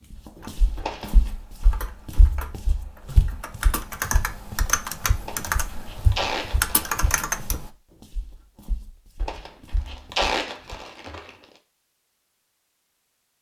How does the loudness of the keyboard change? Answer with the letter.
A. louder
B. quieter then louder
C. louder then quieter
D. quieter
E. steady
A.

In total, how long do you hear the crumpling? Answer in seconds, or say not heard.
5 s.